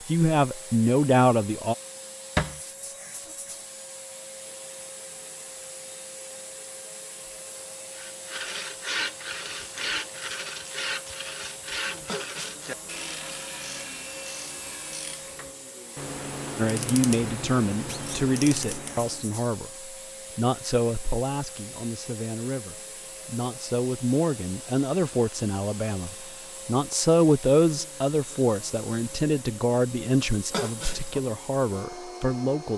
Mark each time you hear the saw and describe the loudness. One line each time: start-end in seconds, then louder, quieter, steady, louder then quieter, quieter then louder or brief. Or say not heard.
7.8-15.3 quieter.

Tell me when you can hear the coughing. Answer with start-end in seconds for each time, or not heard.
12.1-12.8, 30.5-31.2.